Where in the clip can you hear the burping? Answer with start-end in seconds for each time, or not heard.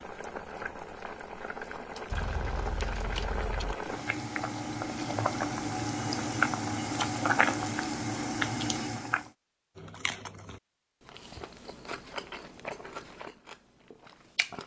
not heard.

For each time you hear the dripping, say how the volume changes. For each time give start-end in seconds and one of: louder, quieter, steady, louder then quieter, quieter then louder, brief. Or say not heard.
not heard.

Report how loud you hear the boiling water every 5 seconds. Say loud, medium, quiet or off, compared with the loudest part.
medium, loud, off.